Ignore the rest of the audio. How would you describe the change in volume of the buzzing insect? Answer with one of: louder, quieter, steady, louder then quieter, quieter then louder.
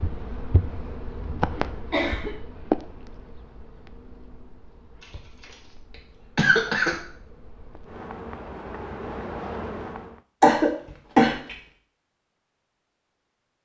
quieter then louder.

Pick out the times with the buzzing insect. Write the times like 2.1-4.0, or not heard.
0.0-10.2.